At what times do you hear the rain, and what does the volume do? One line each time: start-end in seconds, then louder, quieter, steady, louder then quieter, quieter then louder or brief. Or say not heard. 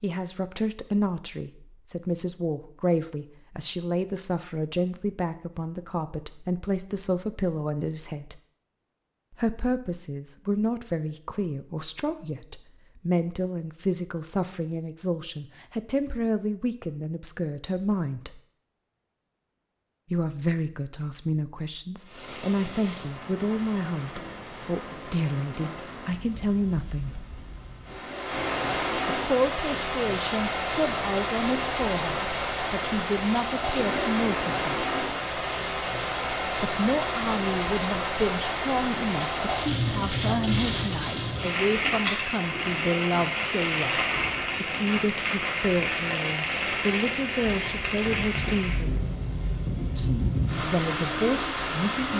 22.0-52.1 louder.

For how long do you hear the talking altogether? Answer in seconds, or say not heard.
45 s.